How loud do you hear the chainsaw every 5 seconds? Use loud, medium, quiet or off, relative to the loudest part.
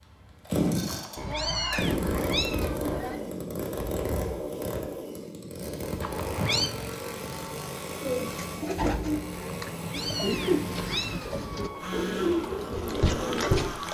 loud, medium, medium.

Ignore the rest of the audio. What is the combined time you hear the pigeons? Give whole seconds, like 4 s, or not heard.
6 s.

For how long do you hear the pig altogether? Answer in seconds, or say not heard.
2 s.